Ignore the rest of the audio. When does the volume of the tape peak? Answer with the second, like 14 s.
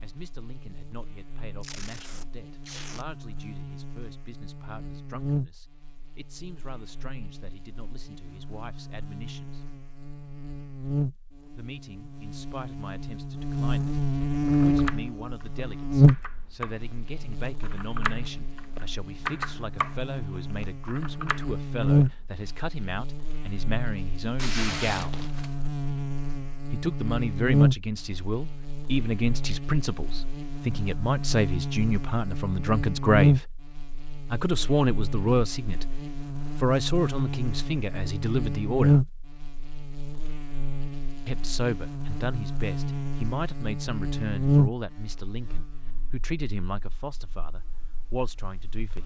25 s.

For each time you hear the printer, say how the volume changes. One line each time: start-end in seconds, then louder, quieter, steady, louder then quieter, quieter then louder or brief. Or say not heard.
not heard.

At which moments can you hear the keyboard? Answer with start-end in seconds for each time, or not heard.
14.5-16.7, 17.4-19.9, 20.6-22.1.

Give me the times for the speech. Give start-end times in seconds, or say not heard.
0.0-9.7, 11.5-25.2, 26.6-33.5, 34.2-39.1, 41.2-49.0.